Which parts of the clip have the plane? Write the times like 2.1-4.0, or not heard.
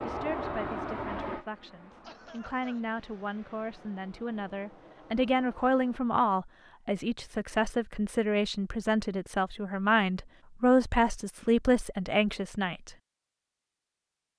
0.0-6.2.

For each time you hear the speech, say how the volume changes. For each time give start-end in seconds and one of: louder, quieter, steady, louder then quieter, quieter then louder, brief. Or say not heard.
0.0-12.9 louder.